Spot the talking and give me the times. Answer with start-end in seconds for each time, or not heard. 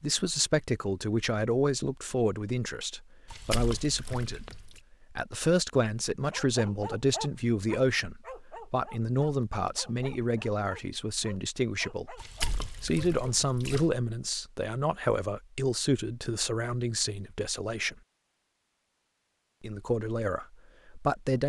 0.0-12.2, 12.8-17.9, 19.6-21.4.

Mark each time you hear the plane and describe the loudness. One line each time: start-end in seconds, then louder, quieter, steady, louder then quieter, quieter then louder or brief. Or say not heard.
not heard.